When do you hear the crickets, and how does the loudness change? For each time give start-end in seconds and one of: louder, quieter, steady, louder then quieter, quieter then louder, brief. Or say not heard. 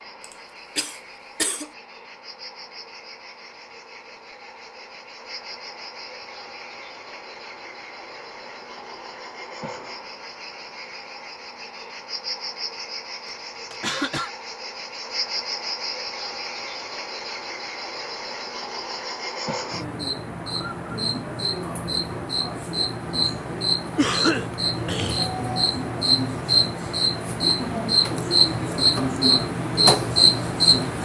0.0-31.0 louder.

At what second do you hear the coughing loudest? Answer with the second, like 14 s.
24 s.